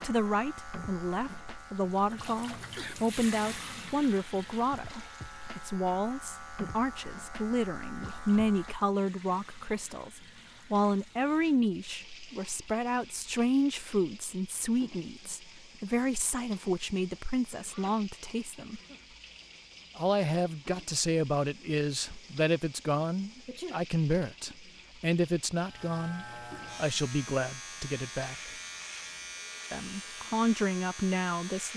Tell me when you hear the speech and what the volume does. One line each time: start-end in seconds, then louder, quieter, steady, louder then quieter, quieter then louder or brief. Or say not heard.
0.0-18.8 steady
19.9-28.5 steady
29.7-31.7 brief.